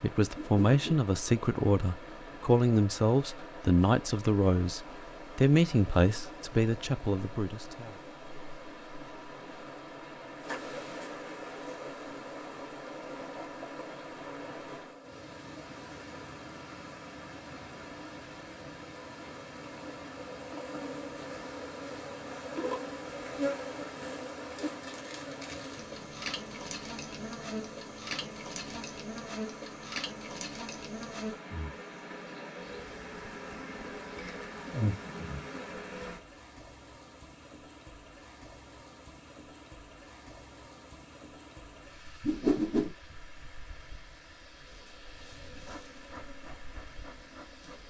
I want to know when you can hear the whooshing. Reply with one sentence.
You can hear the whooshing from 0.3 to 0.8 s and from 42.2 to 42.9 s.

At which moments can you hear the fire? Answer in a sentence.
You can't hear the fire here.